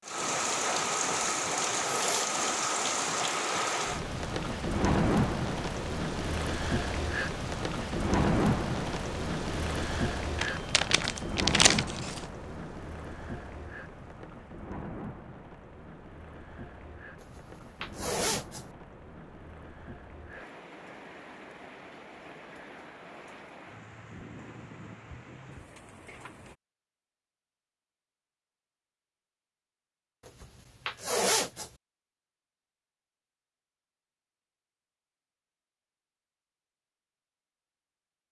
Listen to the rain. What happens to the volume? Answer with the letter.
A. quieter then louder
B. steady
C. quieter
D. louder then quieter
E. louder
C.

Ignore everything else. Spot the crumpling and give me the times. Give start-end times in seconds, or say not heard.
10.3-12.2.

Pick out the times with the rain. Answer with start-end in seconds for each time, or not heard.
0.1-26.6.